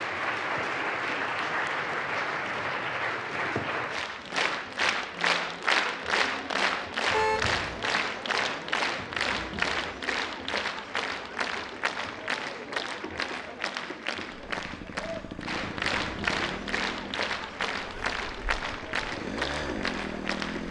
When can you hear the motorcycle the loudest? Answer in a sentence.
The loudest moment of the motorcycle is at 20 seconds.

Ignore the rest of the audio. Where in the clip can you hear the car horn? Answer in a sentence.
You can hear the car horn from 7.1 to 8.0 s.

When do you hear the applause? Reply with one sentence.
The applause can be heard from 0.0 to 20.6 s.